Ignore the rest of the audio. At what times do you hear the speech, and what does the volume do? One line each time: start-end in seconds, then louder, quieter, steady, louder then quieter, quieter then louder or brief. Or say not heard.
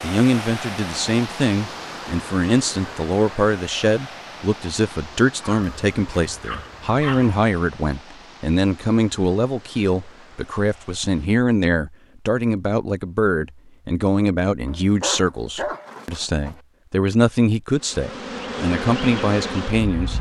0.0-20.1 steady.